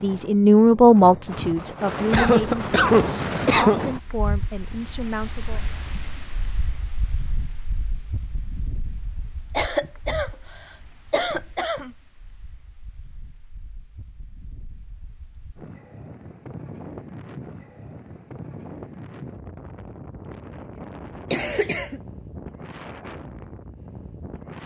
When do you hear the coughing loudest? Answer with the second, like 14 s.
3 s.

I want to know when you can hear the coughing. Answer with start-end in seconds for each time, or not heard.
2.1-3.8, 9.6-10.3, 11.1-11.9, 21.3-22.0.